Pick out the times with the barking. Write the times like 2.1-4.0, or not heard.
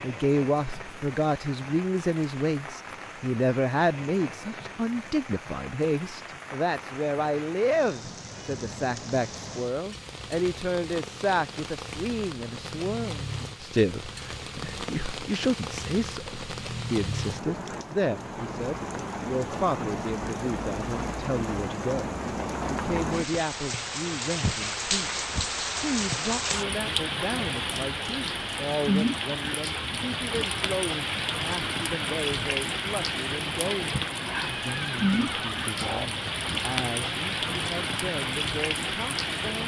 not heard.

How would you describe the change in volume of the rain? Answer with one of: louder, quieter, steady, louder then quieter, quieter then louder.
louder.